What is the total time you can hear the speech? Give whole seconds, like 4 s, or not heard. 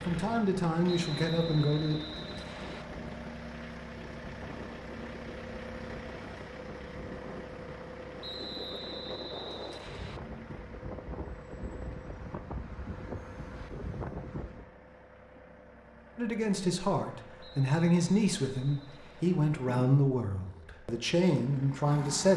8 s.